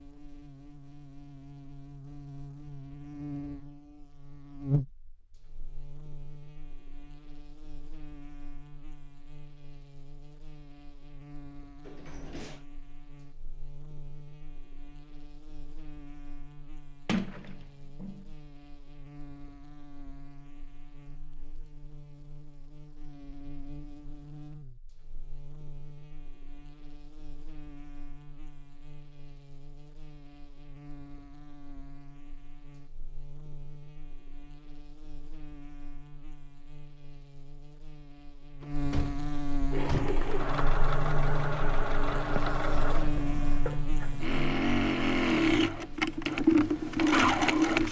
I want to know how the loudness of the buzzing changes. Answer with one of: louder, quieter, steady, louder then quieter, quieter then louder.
quieter then louder.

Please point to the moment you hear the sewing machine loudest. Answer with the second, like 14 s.
47 s.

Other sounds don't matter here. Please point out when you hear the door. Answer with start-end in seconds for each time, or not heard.
11.8-12.7, 17.1-18.2, 38.6-40.3.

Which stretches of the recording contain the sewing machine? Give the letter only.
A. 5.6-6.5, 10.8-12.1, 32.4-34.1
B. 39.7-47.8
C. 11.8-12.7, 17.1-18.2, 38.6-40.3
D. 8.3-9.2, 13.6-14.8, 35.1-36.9
B.